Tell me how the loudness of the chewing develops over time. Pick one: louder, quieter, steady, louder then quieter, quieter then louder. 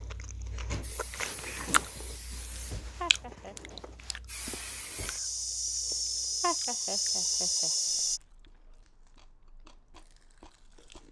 quieter.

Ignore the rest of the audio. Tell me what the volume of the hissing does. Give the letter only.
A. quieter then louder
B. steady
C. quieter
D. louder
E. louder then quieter
D.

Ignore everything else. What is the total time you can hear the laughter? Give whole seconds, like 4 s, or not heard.
2 s.